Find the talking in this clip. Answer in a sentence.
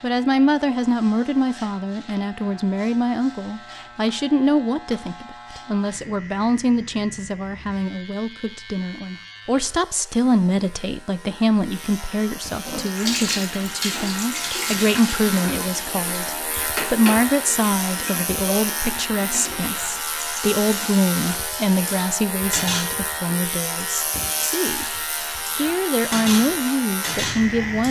You can hear the talking from 0.0 to 24.9 s and from 25.5 to 27.8 s.